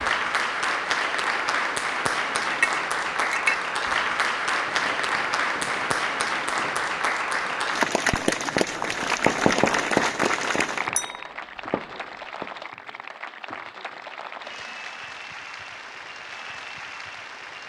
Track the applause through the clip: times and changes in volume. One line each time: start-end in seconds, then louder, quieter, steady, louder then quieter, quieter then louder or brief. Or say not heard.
0.0-17.6 quieter.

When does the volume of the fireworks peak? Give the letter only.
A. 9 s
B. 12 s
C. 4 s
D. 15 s
A.